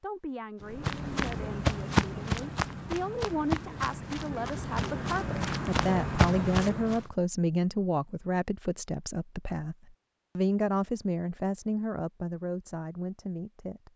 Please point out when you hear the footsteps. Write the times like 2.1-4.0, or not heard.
0.6-7.0.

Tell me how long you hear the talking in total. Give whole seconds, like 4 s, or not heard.
13 s.